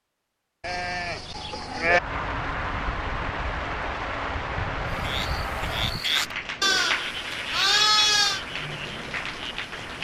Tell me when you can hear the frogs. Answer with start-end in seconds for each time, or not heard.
4.8-10.0.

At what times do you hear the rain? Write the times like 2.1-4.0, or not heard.
1.9-10.0.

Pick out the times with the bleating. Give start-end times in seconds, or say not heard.
0.6-2.0, 6.6-8.4.